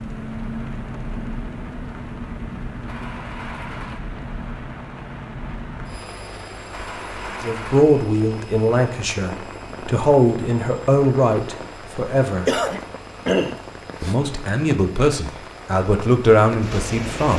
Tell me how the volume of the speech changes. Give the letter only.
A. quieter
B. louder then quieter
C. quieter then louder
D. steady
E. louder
D.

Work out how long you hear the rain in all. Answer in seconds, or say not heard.
17 s.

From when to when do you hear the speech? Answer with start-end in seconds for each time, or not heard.
7.4-12.6, 14.0-17.3.